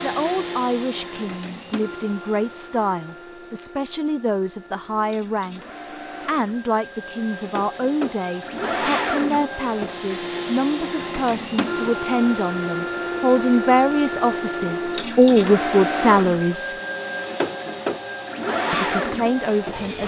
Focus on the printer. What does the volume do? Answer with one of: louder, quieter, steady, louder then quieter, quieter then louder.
louder.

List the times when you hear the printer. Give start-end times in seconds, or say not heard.
0.0-20.0.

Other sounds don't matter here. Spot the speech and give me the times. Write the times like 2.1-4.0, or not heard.
0.0-16.8, 18.7-20.0.